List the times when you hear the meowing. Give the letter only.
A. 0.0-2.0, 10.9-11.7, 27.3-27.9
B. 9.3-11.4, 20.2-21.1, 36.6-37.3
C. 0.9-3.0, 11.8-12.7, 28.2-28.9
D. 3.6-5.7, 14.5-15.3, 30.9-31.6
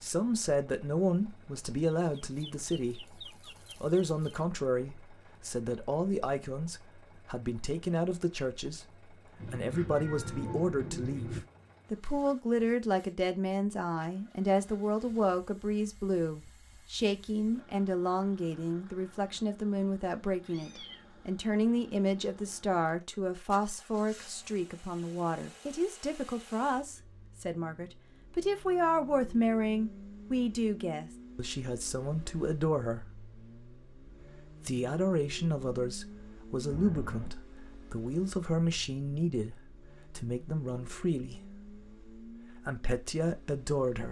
B.